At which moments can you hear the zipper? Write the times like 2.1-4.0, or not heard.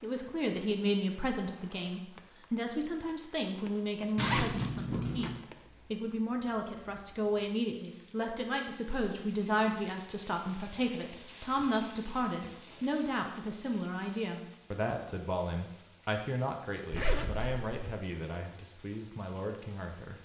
4.2-5.4, 16.9-17.9.